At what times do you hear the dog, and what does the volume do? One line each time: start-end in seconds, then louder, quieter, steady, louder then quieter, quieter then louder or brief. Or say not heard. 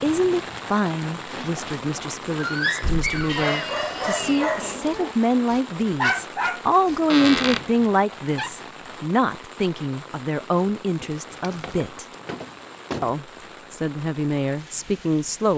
1.3-7.0 quieter then louder.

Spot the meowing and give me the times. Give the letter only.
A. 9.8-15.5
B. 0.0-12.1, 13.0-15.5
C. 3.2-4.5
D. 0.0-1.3
C.